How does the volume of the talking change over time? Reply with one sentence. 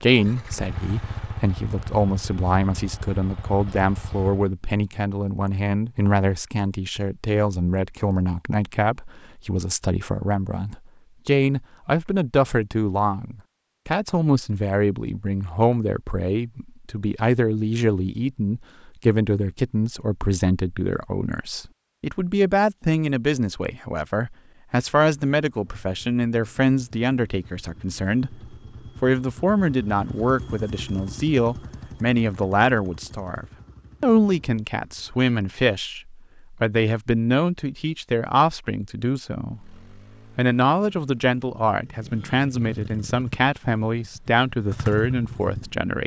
The loudness of the talking stays about the same.